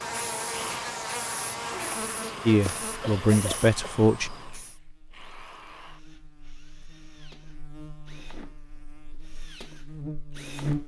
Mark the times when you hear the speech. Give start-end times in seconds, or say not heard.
2.5-4.3.